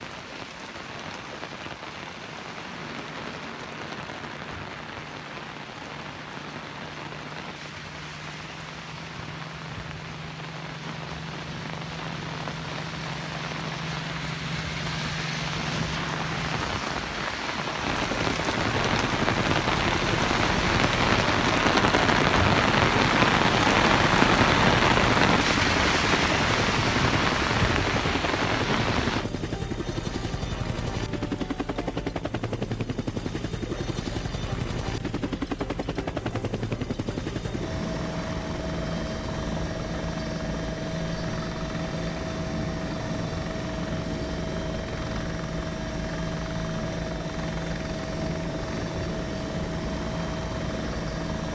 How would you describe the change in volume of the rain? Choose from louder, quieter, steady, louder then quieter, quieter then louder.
louder.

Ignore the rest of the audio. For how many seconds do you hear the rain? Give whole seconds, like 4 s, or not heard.
29 s.